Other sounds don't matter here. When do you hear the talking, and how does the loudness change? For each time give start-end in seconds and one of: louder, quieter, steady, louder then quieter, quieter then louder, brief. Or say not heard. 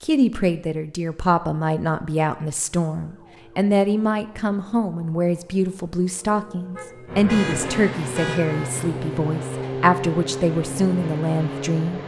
0.0-12.0 steady.